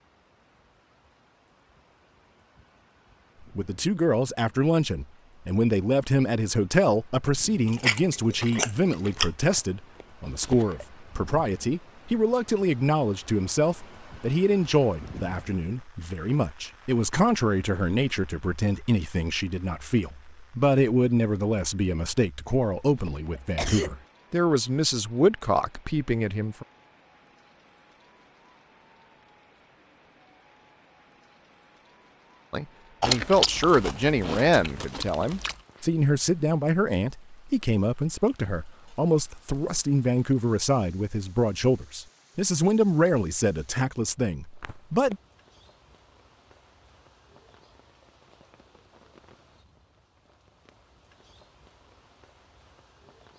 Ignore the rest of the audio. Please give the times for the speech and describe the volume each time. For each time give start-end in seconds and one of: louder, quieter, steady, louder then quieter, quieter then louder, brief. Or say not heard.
3.5-26.6 steady
32.5-45.1 steady.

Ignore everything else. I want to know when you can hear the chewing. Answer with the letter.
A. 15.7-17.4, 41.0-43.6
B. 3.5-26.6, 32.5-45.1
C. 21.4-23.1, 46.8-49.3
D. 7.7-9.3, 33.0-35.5
D.